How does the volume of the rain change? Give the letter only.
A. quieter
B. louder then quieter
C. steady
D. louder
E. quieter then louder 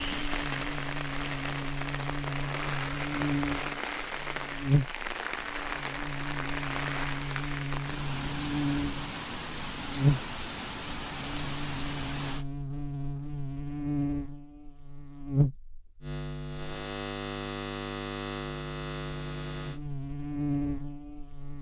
C.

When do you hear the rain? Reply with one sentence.
You can hear the rain from 0.0 to 12.4 s.